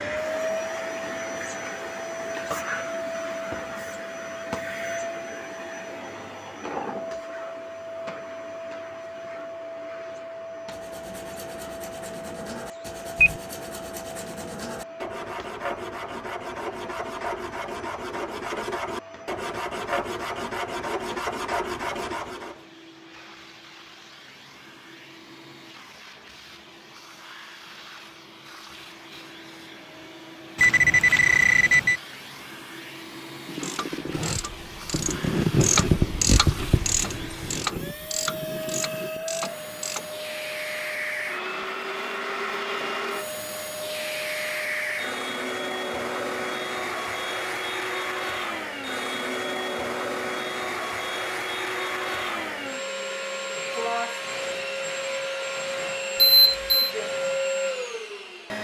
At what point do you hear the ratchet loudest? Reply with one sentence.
The volume of the ratchet peaks at 36 seconds.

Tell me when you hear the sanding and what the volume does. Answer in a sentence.
The sanding can be heard from 10.7 to 22.6 s, getting louder.